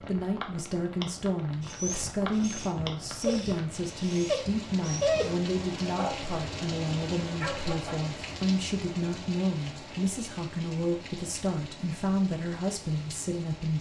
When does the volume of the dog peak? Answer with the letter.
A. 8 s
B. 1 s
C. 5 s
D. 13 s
C.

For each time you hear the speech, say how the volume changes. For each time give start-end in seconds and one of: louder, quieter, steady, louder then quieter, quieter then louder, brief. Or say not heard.
0.0-13.7 steady.